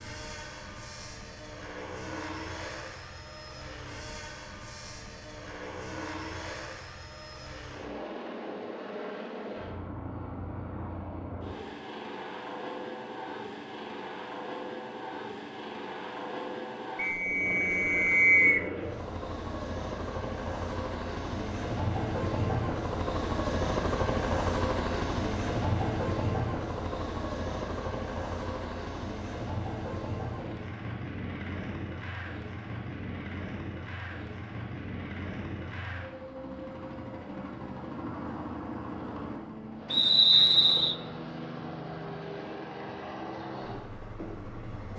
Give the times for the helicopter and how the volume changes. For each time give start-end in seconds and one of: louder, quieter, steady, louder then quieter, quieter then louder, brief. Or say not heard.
0.0-44.9 louder then quieter.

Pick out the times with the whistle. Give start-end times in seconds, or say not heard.
16.9-18.6, 39.9-41.0.